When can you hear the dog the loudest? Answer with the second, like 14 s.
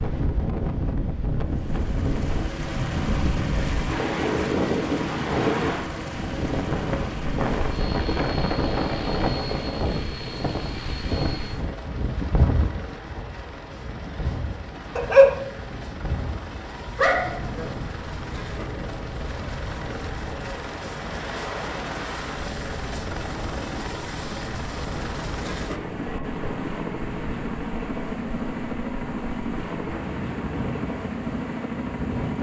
15 s.